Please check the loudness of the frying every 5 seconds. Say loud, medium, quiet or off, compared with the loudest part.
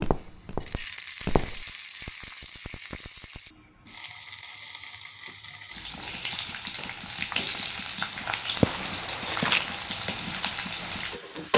medium, loud, loud.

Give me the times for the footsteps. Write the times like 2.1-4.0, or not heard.
0.0-1.6, 8.1-11.5.